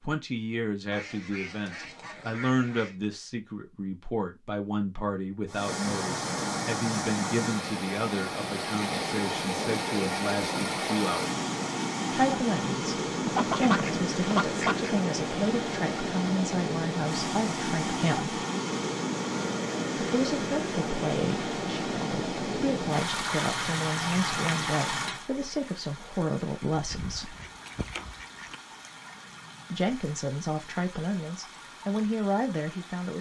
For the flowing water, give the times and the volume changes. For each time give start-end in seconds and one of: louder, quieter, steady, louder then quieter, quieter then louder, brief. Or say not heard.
5.5-33.1 quieter.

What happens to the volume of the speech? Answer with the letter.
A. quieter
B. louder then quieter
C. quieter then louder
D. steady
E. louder
D.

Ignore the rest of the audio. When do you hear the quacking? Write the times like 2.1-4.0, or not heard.
0.9-3.0, 13.2-14.9, 26.7-28.6.